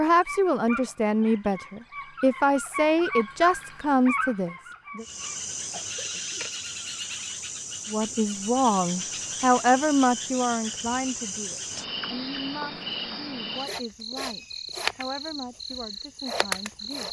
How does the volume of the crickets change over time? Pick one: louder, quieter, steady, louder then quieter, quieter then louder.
steady.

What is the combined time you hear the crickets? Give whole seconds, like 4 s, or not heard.
12 s.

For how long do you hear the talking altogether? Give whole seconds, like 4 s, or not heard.
14 s.